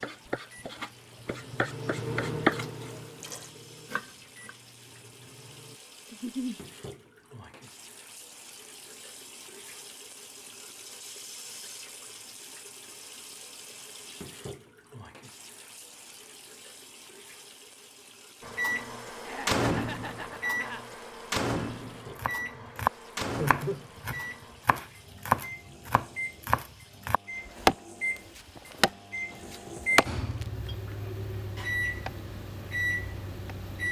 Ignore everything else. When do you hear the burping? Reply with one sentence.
The burping can't be heard in this clip.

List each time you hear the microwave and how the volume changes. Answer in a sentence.
The microwave can be heard from 0.0 to 5.8 s, getting louder then quieter; and from 18.4 to 33.8 s, getting quieter then louder.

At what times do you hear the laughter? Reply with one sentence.
You can hear the laughter from 6.1 to 6.5 s, from 19.2 to 20.8 s and from 23.4 to 23.9 s.